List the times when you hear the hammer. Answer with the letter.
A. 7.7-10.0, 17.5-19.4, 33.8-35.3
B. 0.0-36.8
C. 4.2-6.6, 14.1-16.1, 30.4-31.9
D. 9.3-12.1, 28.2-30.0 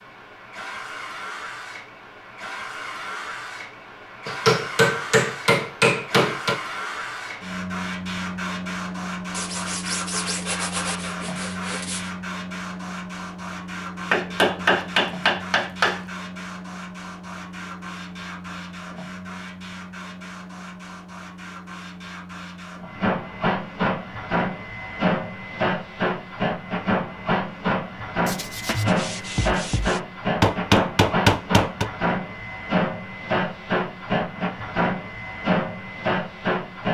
C.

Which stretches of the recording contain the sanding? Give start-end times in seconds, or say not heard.
9.3-12.1, 28.2-30.0.